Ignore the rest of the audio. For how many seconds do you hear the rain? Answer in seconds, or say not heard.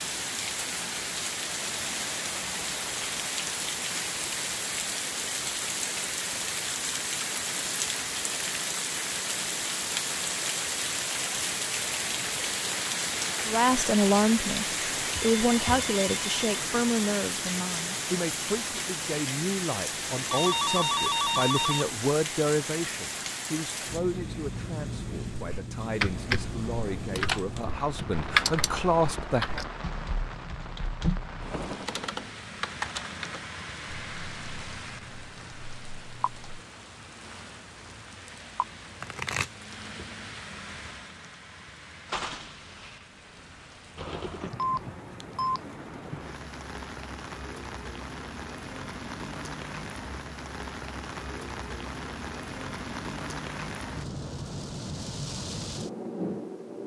57 s.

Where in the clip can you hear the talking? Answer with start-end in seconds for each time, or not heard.
13.4-29.6.